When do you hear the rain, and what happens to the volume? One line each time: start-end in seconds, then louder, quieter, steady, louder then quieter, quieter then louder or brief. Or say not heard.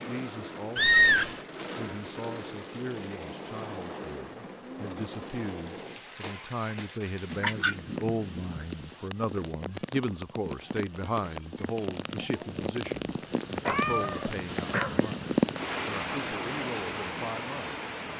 0.0-18.1 louder.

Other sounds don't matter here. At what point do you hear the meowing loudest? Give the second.
1 s.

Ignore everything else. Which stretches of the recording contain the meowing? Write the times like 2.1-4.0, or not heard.
0.8-1.4, 7.3-8.7, 13.7-15.1.